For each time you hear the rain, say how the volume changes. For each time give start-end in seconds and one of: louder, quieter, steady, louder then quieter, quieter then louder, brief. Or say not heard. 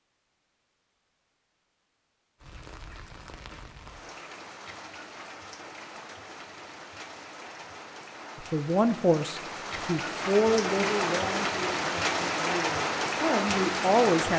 2.4-14.3 louder.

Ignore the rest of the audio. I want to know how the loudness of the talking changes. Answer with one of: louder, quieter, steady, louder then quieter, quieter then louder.
quieter then louder.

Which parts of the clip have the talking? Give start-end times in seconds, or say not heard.
8.5-14.3.